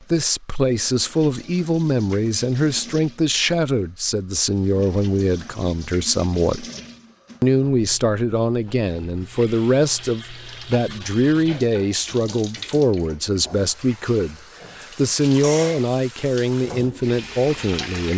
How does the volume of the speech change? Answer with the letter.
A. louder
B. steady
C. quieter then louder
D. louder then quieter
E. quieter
B.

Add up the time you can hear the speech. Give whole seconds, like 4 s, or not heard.
17 s.